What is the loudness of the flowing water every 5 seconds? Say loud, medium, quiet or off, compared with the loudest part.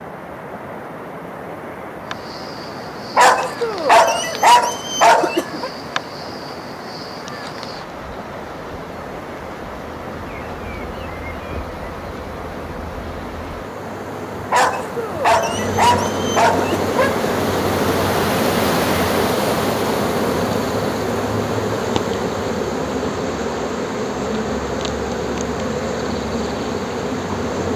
medium, medium, medium, loud, medium, medium.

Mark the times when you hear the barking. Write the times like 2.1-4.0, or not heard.
3.1-5.7, 14.5-17.1.